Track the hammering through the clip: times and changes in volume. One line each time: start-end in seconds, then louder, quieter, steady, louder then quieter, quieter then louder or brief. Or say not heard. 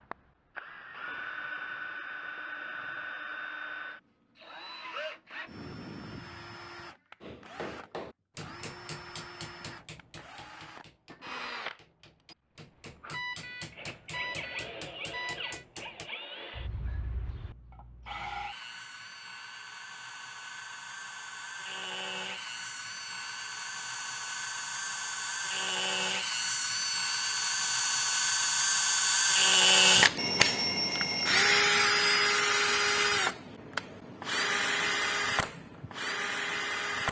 7.2-16.1 quieter then louder.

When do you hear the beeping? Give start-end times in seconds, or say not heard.
13.1-15.7, 30.1-31.7.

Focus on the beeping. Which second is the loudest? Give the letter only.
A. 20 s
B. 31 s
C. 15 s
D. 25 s
B.